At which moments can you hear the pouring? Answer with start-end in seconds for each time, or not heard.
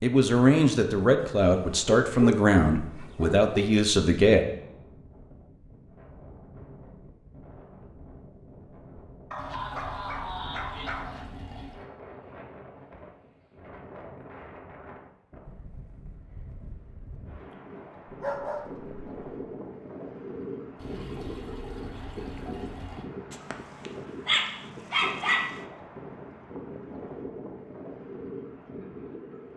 9.3-11.9, 20.8-23.1.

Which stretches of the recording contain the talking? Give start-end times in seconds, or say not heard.
0.0-4.5.